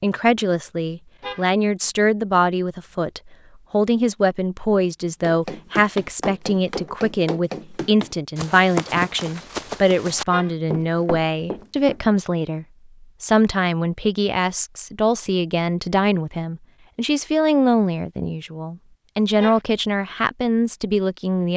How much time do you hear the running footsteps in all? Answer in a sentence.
The running footsteps can be heard for 7 seconds in total.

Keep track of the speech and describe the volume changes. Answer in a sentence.
The volume of the speech stays about the same.